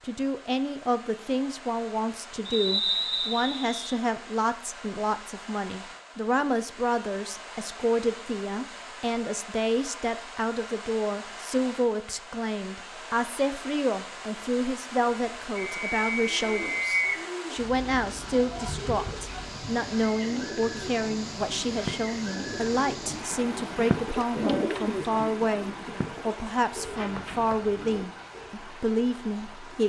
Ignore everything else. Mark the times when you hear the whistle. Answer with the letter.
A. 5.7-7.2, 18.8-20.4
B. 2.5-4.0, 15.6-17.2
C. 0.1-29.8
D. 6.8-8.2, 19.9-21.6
B.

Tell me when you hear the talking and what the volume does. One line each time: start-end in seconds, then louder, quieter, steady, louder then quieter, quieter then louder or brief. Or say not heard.
0.1-29.8 steady.